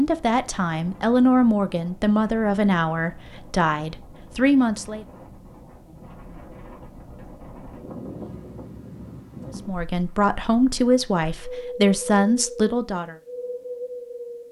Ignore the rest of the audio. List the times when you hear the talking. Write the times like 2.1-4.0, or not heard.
0.0-5.0, 9.6-13.2.